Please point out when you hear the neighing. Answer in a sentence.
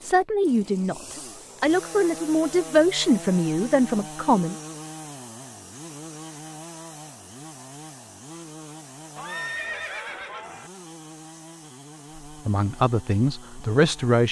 You can hear the neighing from 9.2 to 10.7 s.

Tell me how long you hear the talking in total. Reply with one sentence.
You can hear the talking for 6 seconds altogether.